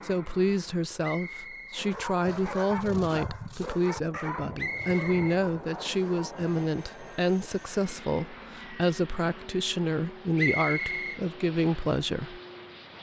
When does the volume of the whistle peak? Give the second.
11 s.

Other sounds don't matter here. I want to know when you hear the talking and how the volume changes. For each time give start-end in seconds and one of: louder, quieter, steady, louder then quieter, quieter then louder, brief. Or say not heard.
0.0-12.4 steady.